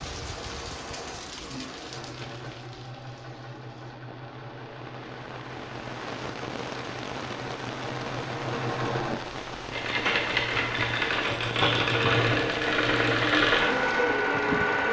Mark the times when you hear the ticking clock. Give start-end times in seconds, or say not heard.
not heard.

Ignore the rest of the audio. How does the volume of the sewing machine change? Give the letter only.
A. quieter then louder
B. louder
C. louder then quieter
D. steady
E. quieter
B.